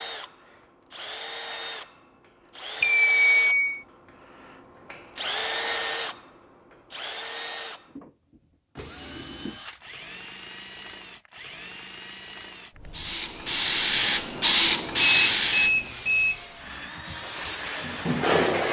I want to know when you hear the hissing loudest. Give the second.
15 s.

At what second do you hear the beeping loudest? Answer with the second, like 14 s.
3 s.